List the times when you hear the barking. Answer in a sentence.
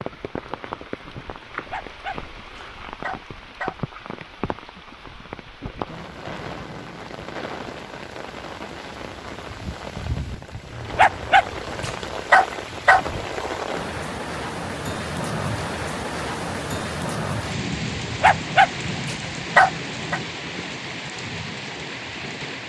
The barking can be heard from 1.5 to 3.8 s, from 10.7 to 13.1 s and from 18.0 to 20.2 s.